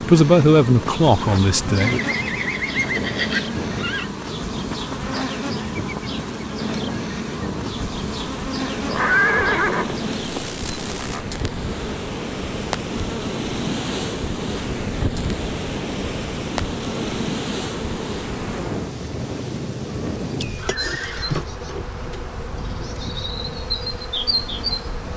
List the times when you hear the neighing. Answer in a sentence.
You can hear the neighing from 1.8 to 4.0 s, from 8.7 to 11.2 s and from 20.6 to 21.4 s.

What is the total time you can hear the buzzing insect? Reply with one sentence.
You can hear the buzzing insect for 25 seconds altogether.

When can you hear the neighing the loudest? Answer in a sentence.
The volume of the neighing peaks at 9 seconds.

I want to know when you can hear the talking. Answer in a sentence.
You can hear the talking from 0.1 to 2.0 s.